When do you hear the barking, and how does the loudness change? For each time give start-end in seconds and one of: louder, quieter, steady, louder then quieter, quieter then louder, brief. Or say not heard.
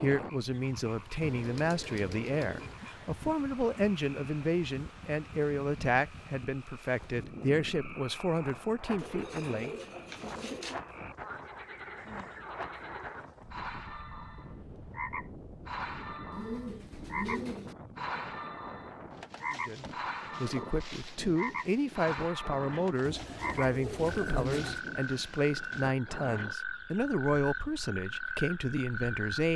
not heard.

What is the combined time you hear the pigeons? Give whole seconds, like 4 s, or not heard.
7 s.